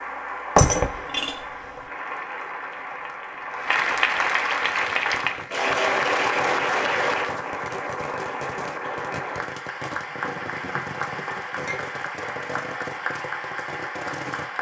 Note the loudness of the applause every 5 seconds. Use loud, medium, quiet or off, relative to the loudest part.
loud, loud, medium.